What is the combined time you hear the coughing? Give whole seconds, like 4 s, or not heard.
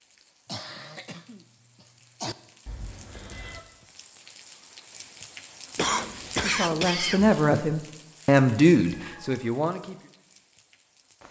4 s.